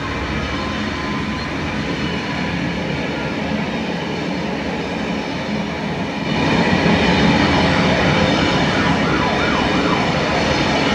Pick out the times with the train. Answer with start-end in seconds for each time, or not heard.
0.0-10.9.